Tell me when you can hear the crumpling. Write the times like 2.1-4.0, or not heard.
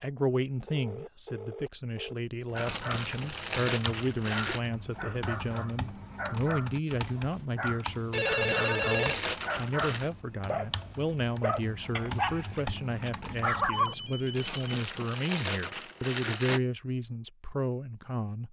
2.5-4.6, 8.1-10.1, 14.3-16.6.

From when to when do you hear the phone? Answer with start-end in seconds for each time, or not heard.
0.7-2.1, 8.1-9.2, 13.6-14.8.